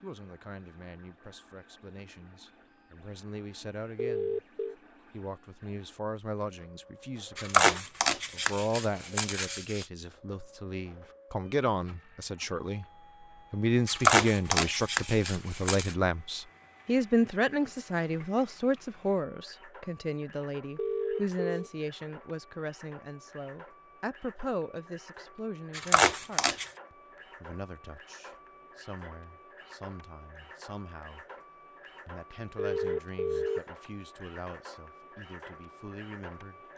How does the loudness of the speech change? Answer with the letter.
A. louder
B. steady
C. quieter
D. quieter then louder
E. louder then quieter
E.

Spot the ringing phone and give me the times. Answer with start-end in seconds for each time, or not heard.
4.0-4.8, 20.8-21.7, 32.5-33.6.